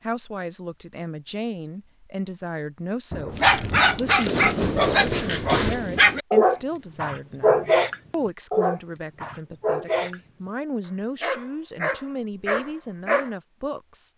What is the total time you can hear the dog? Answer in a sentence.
The dog can be heard for 9 seconds in total.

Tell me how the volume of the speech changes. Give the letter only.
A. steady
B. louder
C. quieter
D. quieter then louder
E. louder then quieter
A.